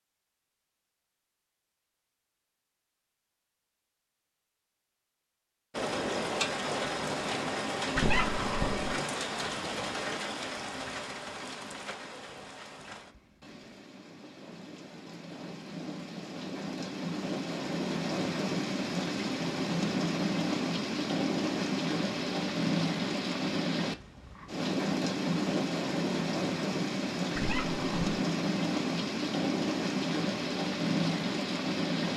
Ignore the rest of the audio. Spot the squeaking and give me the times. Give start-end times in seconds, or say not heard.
8.0-8.9, 27.4-28.1.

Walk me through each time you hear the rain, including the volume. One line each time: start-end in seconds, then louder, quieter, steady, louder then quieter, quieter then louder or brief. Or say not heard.
5.7-32.1 quieter then louder.